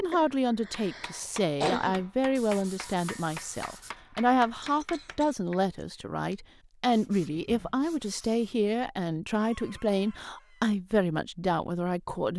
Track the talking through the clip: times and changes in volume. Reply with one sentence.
The talking can be heard from 0.0 to 12.3 s, at a steady volume.